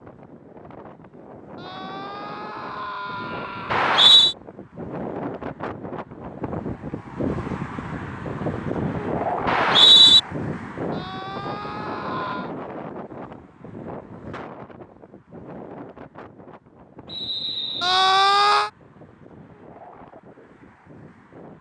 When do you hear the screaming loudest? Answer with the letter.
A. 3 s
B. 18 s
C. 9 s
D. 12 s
B.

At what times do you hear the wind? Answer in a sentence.
You can hear the wind from 0.0 to 21.5 s.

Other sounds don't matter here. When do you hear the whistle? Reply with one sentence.
The whistle can be heard from 3.7 to 4.3 s, from 9.4 to 10.2 s and from 17.1 to 18.6 s.